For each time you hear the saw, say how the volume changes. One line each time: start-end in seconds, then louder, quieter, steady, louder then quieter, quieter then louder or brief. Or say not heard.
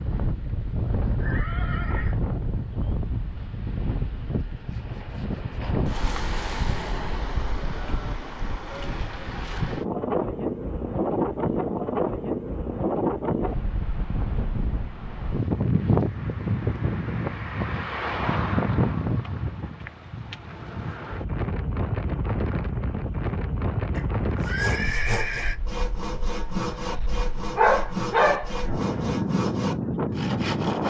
24.4-30.8 steady.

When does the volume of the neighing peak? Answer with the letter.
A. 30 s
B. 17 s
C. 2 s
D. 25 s
D.